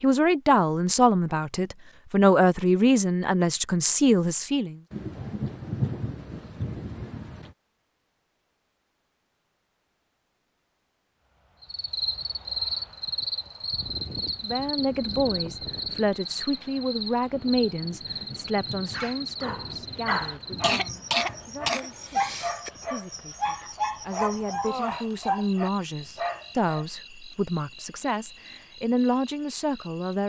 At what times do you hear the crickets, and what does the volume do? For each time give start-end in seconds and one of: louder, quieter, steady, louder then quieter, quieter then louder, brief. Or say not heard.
11.6-30.2 quieter.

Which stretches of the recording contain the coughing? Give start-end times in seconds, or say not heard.
20.6-22.7.